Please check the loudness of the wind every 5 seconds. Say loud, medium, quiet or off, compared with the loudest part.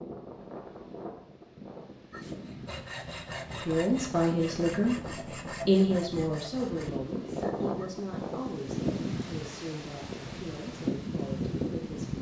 medium, loud, loud.